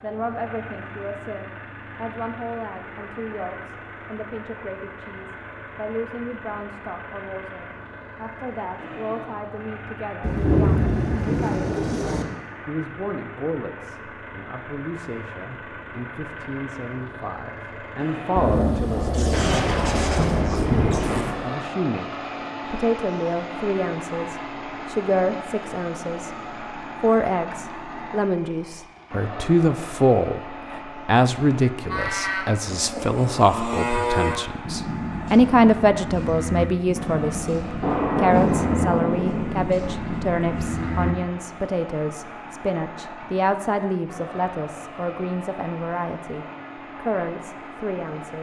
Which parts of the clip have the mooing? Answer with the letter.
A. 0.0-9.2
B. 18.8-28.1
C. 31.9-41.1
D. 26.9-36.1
C.